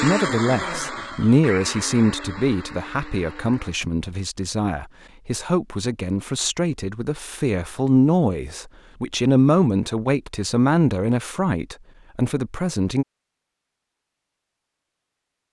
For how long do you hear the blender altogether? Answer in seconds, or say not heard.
4 s.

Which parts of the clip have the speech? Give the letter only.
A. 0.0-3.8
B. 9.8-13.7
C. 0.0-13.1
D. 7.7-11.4
C.